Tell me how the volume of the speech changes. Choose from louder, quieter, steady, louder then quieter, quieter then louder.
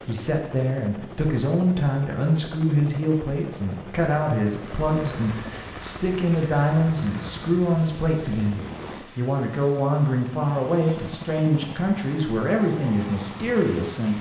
steady.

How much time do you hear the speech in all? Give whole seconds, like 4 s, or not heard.
14 s.